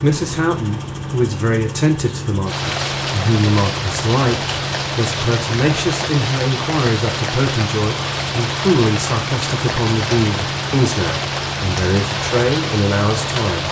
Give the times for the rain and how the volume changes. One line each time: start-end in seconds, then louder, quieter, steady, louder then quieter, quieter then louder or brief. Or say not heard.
2.5-13.6 steady.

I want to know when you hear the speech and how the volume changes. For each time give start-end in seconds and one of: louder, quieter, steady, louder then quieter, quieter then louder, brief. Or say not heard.
0.0-13.6 steady.